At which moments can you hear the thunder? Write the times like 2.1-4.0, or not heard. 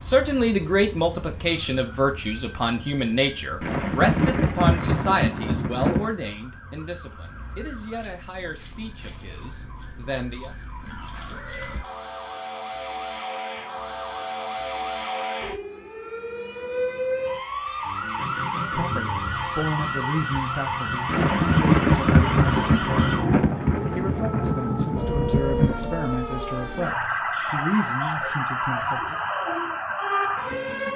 3.6-6.2, 21.1-25.9.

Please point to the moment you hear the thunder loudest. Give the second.
22 s.